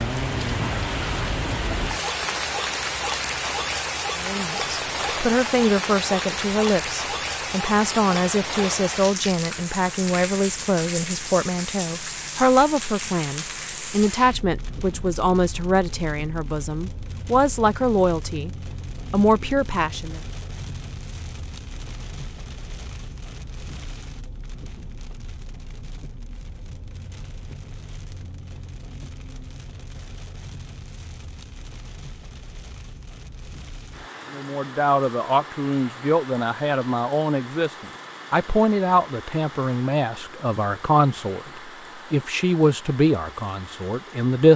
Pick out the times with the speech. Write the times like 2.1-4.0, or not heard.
4.2-18.5, 19.1-20.2, 34.3-44.5.